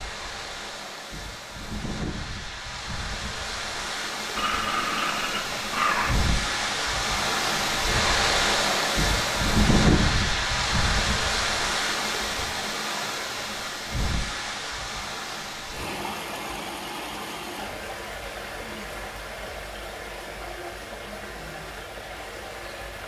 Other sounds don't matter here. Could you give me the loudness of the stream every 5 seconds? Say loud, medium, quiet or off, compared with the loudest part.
medium, loud, loud, medium, quiet.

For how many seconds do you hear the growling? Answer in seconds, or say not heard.
2 s.